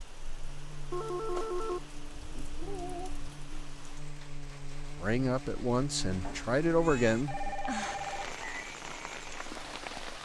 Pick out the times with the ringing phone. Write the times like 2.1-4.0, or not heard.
0.9-1.9, 7.2-8.6.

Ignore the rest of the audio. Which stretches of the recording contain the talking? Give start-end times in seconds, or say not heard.
5.0-7.5.